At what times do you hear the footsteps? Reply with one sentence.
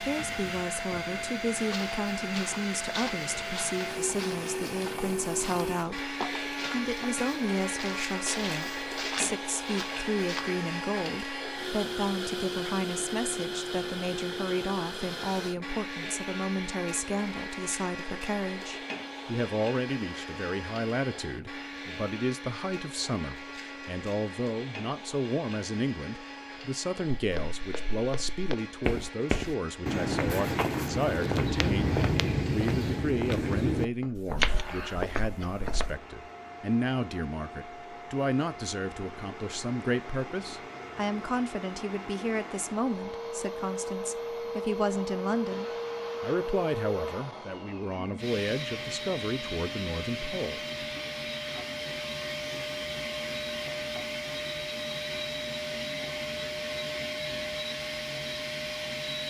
You can hear the footsteps from 1.5 to 10.5 s and from 27.1 to 36.0 s.